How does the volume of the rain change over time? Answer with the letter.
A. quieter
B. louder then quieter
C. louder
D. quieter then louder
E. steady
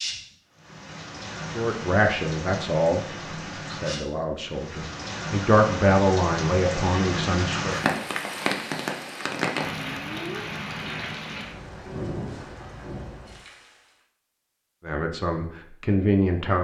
B.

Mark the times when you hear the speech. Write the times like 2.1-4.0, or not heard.
1.5-7.8, 14.8-16.5.